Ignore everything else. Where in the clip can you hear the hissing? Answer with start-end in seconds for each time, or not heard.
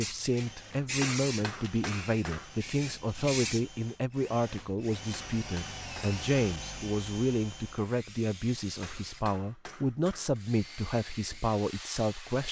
0.0-3.6, 10.5-12.4.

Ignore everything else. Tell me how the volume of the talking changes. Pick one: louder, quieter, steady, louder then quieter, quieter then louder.
steady.